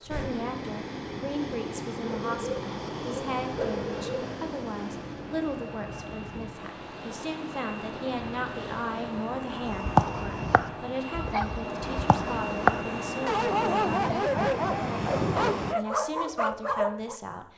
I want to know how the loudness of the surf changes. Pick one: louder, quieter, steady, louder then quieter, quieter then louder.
quieter.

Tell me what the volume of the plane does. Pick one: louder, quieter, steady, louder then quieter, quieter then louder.
louder.